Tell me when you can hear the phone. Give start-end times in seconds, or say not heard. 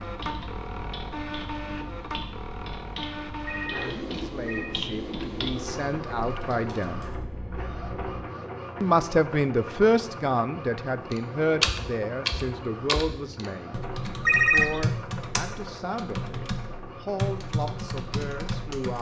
3.5-4.8, 7.0-8.2, 14.2-14.8.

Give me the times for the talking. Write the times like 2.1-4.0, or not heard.
4.1-7.0, 8.8-18.9.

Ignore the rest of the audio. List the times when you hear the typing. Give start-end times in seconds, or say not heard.
0.0-7.2, 11.1-18.9.